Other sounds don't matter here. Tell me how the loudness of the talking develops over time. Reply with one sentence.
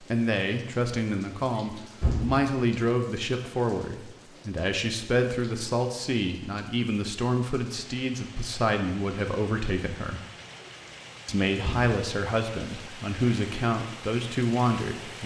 The volume of the talking stays about the same.